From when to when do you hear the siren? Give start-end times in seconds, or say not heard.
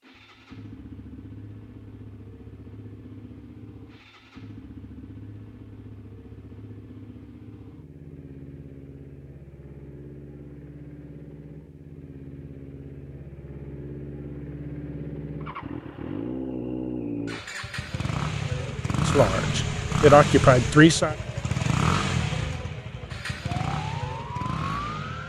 23.6-25.2.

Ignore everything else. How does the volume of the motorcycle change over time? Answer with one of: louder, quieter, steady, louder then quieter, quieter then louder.
louder.